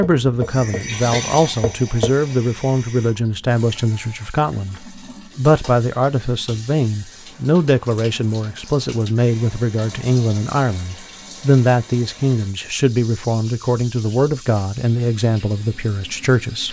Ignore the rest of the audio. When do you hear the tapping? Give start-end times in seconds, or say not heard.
0.0-2.1.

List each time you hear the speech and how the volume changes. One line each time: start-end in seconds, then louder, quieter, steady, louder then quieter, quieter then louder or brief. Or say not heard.
0.0-16.6 steady.